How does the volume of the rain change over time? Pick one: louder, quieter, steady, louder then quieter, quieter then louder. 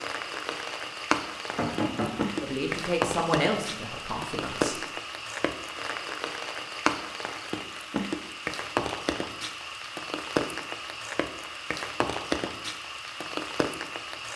steady.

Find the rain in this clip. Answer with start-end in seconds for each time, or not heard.
0.0-14.3.